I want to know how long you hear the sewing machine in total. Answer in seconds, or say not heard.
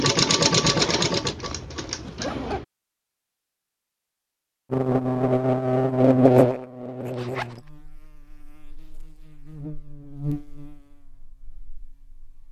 2 s.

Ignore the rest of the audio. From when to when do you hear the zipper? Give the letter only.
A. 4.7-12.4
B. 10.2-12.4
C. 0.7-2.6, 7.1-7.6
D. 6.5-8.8
C.